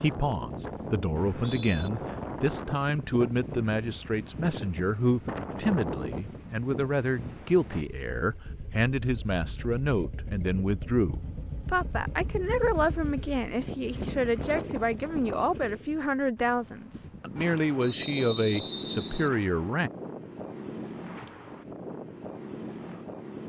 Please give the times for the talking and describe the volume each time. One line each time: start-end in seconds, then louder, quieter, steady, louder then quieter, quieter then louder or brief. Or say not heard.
0.0-19.9 steady.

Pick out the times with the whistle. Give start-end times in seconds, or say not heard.
1.1-1.9, 17.8-19.3.